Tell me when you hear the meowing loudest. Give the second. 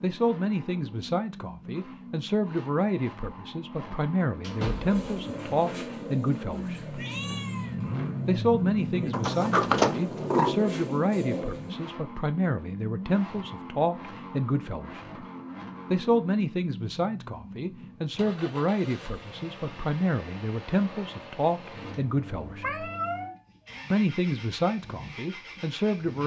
23 s.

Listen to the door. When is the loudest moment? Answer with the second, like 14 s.
10 s.